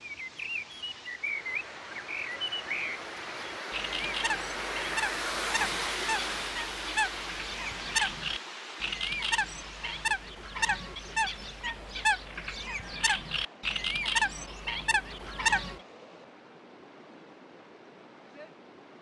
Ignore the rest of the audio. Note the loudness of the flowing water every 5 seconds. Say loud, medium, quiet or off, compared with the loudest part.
loud, loud, quiet, quiet.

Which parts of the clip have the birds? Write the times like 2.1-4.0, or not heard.
0.0-15.8.